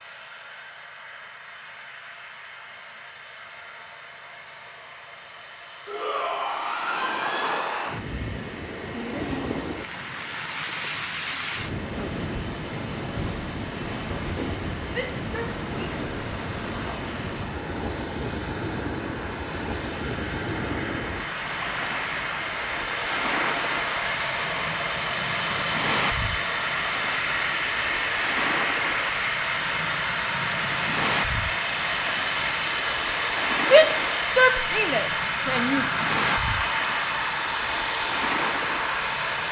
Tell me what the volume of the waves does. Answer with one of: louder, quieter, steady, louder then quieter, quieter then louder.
steady.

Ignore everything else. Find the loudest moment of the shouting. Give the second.
34 s.